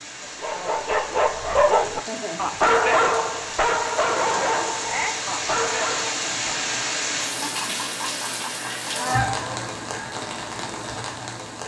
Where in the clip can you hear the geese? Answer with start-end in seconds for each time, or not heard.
8.6-10.1.